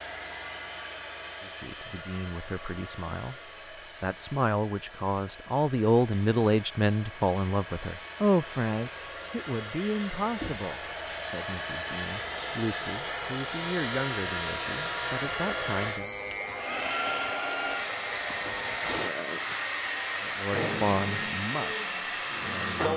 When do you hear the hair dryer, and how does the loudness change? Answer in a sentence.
The hair dryer can be heard from 0.0 to 22.9 s, getting louder.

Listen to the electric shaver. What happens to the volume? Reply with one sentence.
The volume of the electric shaver stays about the same.